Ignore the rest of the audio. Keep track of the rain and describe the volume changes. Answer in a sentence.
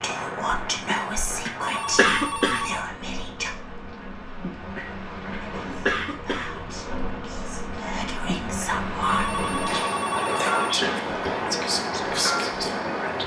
The volume of the rain goes up.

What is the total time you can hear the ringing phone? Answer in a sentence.
You can hear the ringing phone for 3 seconds altogether.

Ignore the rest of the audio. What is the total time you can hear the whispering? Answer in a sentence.
You can hear the whispering for 11 seconds altogether.